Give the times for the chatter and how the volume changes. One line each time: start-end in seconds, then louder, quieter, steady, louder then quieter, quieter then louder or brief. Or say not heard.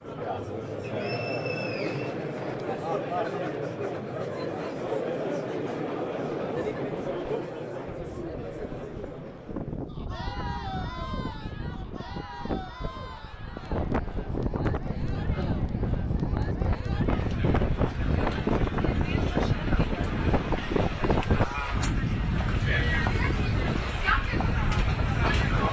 0.0-25.6 quieter then louder.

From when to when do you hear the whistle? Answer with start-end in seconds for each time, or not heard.
0.8-2.3.